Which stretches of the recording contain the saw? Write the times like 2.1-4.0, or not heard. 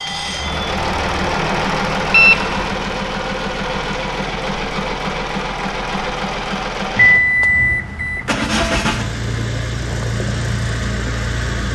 not heard.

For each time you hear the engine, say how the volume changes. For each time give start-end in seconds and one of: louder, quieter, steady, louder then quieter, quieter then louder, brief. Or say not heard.
0.0-11.7 steady.